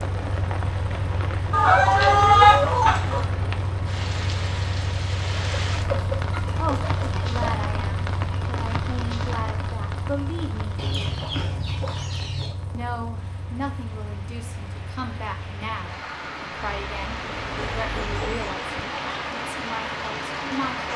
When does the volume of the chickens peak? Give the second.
2 s.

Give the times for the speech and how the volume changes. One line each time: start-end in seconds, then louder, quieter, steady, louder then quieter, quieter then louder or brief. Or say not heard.
6.5-10.8 quieter then louder
12.7-20.9 steady.